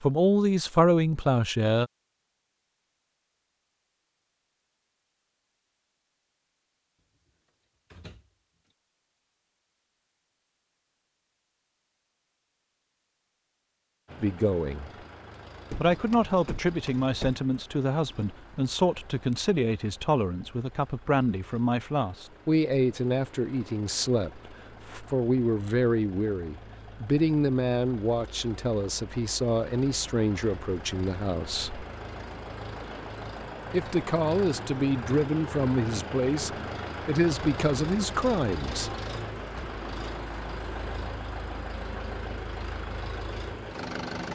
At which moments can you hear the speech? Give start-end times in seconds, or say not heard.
0.0-1.9, 14.2-14.9, 15.8-31.9, 33.7-38.9.